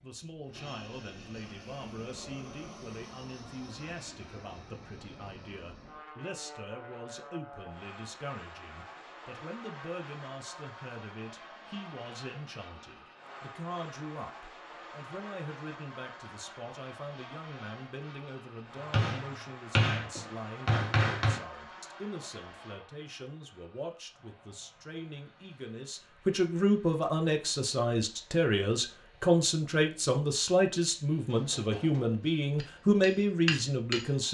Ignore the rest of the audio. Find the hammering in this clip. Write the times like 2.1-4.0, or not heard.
18.9-21.4, 31.2-34.1.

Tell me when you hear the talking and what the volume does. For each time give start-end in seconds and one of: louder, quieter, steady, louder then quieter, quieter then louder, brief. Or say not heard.
0.0-34.3 louder.